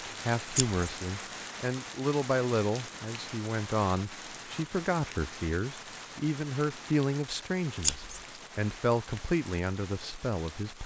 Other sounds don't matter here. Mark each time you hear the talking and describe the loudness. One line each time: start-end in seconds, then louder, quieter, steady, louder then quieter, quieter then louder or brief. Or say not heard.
0.2-10.8 steady.